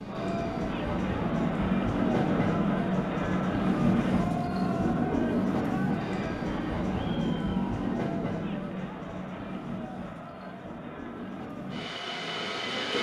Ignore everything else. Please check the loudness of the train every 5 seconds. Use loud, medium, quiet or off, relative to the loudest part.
loud, loud, medium.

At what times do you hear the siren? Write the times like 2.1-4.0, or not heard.
not heard.